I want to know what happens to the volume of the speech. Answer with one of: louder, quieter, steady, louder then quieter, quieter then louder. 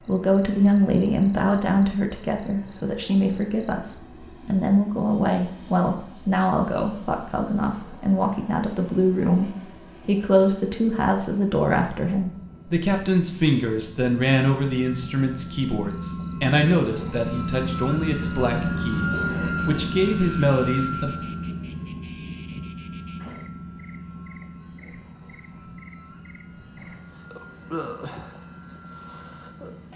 steady.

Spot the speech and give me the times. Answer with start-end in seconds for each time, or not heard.
0.1-21.1.